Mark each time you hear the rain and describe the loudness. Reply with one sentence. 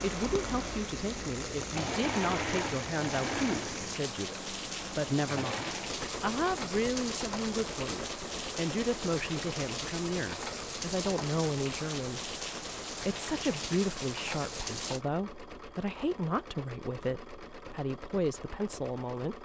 The rain can be heard from 0.0 to 15.1 s, at a steady volume.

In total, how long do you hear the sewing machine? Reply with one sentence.
The sewing machine can be heard for 19 seconds in total.